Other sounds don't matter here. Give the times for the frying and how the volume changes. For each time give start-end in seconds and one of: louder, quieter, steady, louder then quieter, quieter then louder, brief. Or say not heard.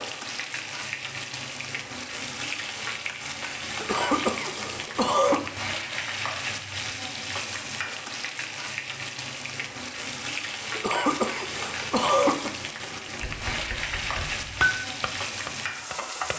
0.0-16.3 steady.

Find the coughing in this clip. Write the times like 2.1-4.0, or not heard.
3.8-5.4, 10.7-12.5.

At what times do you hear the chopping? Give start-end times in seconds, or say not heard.
14.6-16.3.